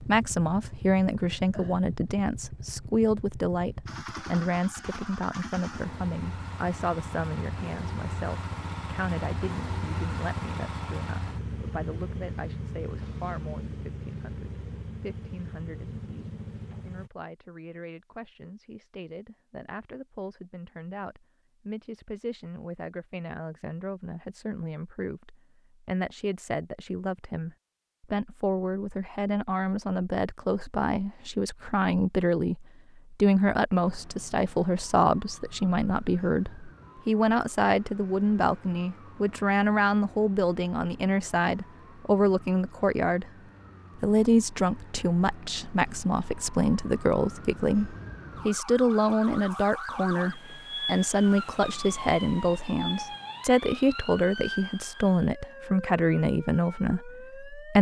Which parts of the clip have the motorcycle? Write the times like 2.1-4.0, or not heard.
0.0-17.1.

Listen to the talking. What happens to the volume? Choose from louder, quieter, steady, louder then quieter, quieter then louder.
quieter then louder.